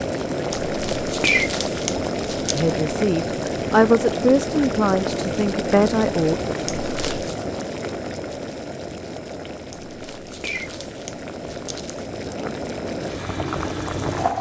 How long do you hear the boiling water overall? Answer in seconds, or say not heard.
14 s.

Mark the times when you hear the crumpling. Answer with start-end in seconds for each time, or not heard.
0.6-2.7, 6.7-7.3, 9.8-12.1.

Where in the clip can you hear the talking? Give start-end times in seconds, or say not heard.
2.5-6.4.